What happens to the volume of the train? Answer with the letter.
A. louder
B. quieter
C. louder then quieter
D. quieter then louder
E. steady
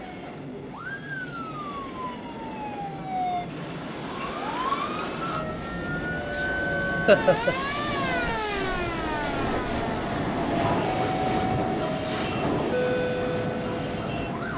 A.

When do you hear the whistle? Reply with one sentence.
The whistle can't be heard in this clip.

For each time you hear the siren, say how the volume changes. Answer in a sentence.
You can hear the siren from 0.0 to 14.5 s, getting louder then quieter.